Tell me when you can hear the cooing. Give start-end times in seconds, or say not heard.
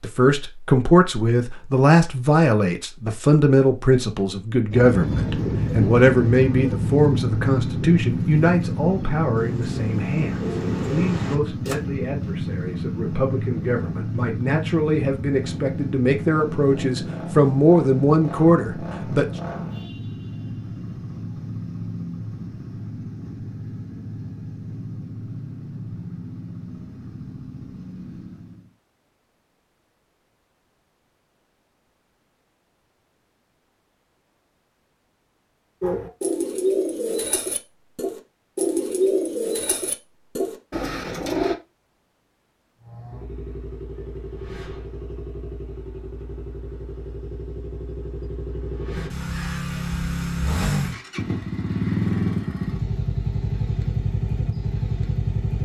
4.7-11.8, 35.8-41.5.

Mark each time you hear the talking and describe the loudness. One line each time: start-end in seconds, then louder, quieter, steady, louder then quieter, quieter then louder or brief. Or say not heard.
0.0-19.2 quieter then louder.